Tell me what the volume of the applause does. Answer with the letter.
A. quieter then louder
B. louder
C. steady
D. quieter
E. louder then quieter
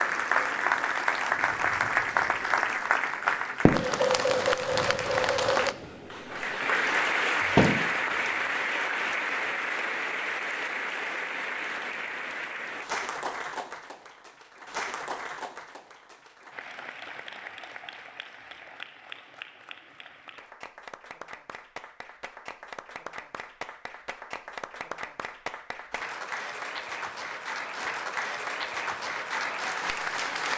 A.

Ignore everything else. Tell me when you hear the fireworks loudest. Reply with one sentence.
The loudest moment of the fireworks is at 8 seconds.